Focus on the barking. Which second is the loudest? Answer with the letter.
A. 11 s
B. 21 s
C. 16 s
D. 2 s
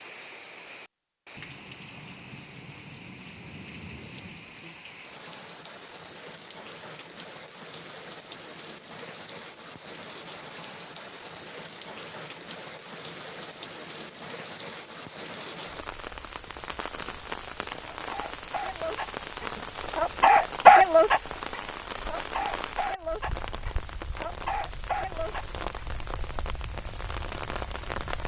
B.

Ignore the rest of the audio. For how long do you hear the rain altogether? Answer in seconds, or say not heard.
28 s.